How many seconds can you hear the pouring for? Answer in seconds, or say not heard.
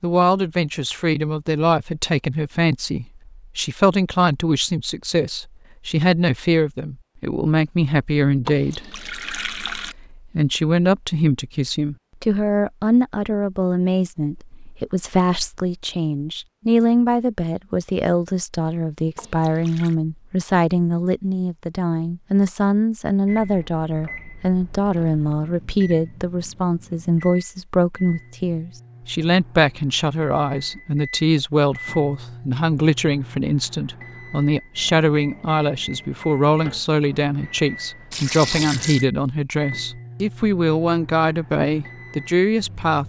3 s.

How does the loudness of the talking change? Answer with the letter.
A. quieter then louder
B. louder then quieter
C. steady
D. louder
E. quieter
C.